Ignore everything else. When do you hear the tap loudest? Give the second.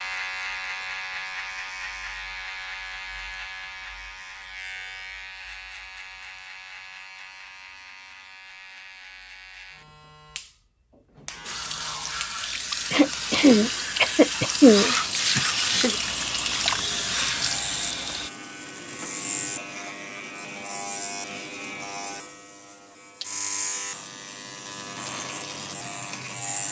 15 s.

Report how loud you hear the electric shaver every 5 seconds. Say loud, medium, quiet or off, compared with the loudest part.
loud, medium, medium, loud, loud, loud.